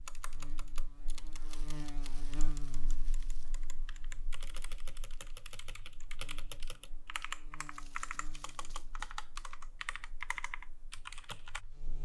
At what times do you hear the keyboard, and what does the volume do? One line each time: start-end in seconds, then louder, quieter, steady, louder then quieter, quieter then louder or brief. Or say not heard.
0.1-11.6 louder.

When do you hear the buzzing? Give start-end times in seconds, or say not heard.
0.0-11.9.